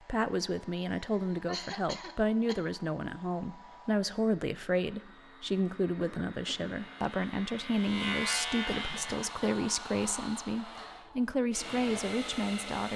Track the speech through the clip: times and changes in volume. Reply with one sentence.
The speech can be heard from 0.1 to 12.9 s, at a steady volume.